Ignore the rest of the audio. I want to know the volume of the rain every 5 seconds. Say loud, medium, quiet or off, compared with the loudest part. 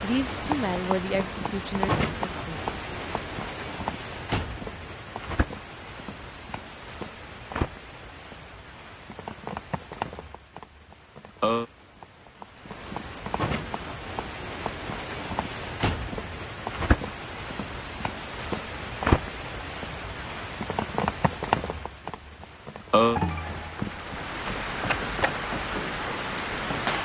loud, medium, medium, loud, loud, loud.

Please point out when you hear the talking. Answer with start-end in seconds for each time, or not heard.
0.0-2.8.